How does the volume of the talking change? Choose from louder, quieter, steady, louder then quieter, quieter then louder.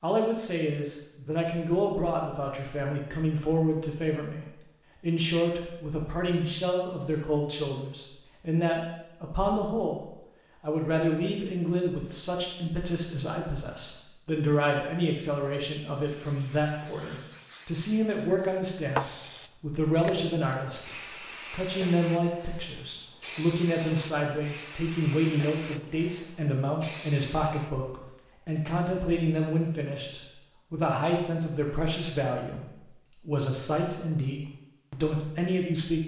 steady.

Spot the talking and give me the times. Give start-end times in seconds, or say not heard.
0.0-36.0.